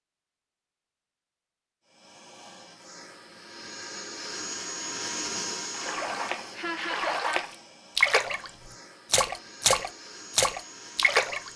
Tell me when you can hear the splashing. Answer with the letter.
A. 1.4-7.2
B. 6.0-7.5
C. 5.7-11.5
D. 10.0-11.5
C.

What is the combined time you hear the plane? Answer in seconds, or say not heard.
10 s.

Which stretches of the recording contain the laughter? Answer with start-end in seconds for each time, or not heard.
6.0-7.5.